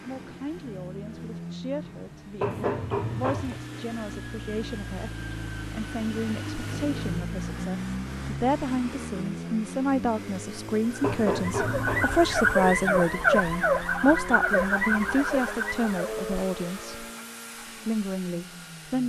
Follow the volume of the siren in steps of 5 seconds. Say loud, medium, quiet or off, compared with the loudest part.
off, off, loud, medium.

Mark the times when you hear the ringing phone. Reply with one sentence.
The ringing phone can be heard from 2.4 to 3.6 s and from 11.0 to 12.7 s.